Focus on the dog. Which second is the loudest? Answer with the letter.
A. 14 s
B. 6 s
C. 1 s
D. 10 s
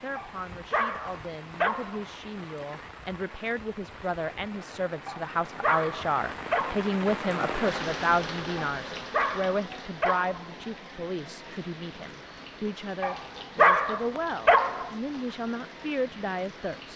A.